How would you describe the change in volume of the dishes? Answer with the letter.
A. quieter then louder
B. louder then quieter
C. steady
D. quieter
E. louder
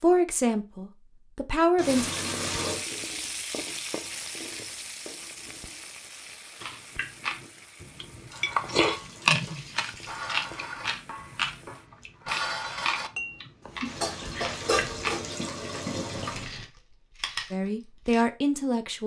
E.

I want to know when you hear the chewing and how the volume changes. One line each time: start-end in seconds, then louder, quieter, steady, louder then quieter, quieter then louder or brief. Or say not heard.
6.6-15.2 louder then quieter
16.1-18.2 brief.